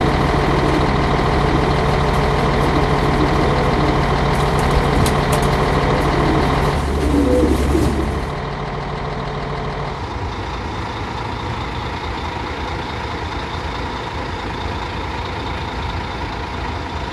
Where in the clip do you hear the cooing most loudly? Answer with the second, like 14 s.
7 s.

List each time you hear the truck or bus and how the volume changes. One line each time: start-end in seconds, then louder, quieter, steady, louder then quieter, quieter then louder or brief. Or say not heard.
0.0-17.0 quieter.